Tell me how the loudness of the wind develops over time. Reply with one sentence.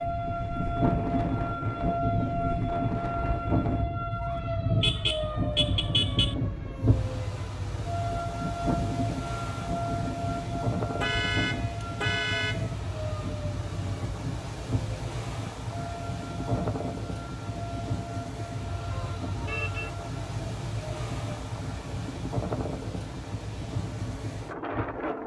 The loudness of the wind stays about the same.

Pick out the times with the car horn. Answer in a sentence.
The car horn can be heard from 4.8 to 6.3 s, from 11.0 to 12.7 s and from 18.9 to 19.9 s.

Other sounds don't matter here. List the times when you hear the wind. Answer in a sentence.
You can hear the wind from 0.0 to 25.2 s.